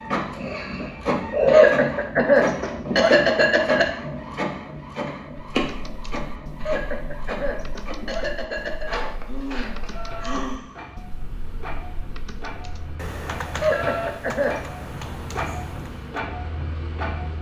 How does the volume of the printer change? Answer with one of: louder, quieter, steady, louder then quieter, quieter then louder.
quieter then louder.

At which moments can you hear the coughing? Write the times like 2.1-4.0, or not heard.
1.4-3.9, 6.6-8.9, 13.6-14.6.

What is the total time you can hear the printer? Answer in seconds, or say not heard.
17 s.